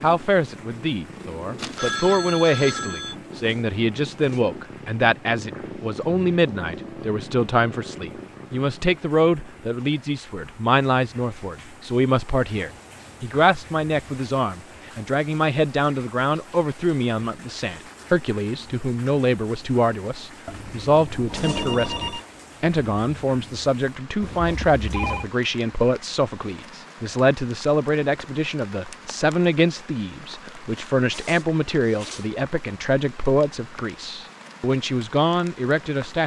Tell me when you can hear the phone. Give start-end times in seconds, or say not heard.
1.6-3.1, 20.4-22.2, 24.2-25.3.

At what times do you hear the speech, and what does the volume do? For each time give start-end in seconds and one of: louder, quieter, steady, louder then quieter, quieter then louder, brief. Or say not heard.
0.0-36.2 steady.